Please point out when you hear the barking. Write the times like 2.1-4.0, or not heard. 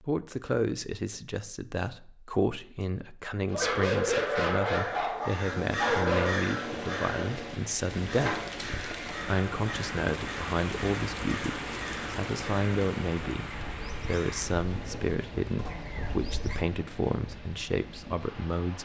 3.5-6.5.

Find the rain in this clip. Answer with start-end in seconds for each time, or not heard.
6.5-18.7.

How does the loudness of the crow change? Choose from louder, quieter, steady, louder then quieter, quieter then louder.
quieter.